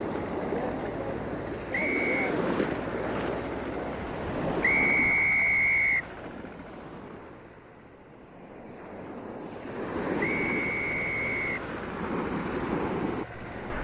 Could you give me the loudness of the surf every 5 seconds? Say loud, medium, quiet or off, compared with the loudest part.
loud, medium, loud.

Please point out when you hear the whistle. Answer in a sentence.
The whistle can be heard from 1.7 to 2.3 s, from 4.6 to 6.1 s and from 10.2 to 11.6 s.